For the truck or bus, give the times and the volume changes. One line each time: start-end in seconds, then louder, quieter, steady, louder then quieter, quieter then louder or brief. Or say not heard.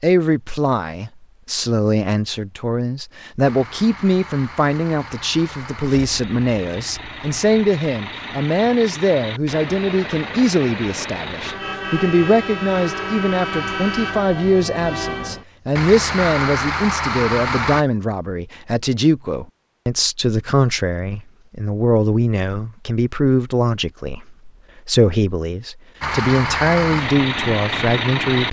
3.4-17.9 louder
26.0-28.4 brief.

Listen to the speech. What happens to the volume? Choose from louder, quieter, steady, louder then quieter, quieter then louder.
steady.